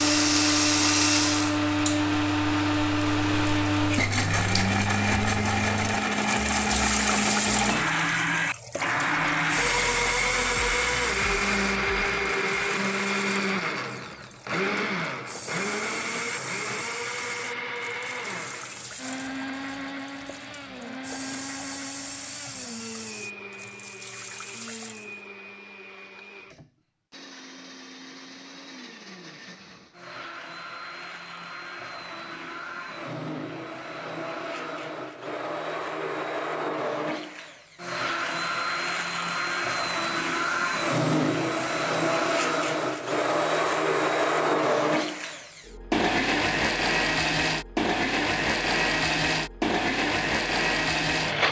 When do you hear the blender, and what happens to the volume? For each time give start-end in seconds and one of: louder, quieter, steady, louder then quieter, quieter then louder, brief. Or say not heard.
0.0-51.4 quieter then louder.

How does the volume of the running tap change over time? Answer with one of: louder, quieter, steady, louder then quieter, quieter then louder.
quieter.